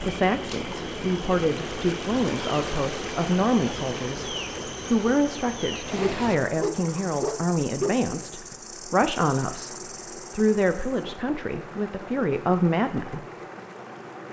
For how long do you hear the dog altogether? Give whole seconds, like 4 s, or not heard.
2 s.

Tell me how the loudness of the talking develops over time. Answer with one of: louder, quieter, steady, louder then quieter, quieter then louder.
steady.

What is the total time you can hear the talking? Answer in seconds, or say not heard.
13 s.